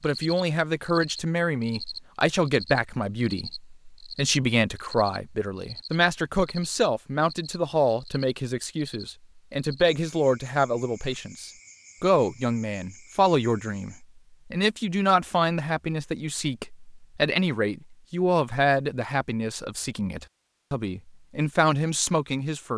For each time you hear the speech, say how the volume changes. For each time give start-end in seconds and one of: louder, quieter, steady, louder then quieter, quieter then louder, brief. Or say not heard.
0.0-22.7 steady.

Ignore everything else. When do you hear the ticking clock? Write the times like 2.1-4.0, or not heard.
not heard.